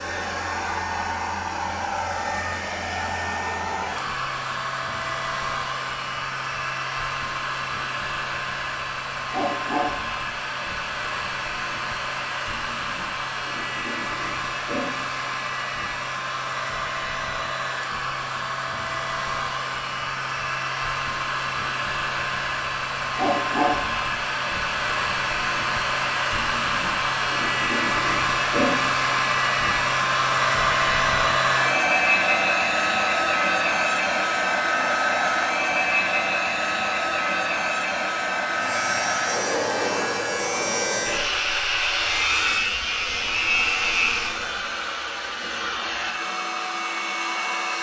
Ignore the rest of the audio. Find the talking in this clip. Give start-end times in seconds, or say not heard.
not heard.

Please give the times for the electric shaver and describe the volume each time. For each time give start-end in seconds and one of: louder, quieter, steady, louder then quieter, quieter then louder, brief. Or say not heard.
38.5-44.5 louder.